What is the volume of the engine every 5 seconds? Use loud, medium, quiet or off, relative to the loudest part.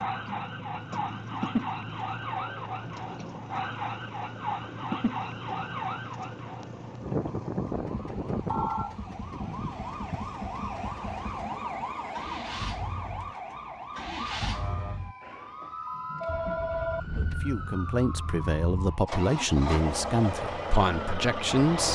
medium, medium, medium, medium, loud.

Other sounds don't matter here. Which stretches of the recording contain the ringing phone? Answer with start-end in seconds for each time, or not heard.
8.4-8.9, 15.2-17.0.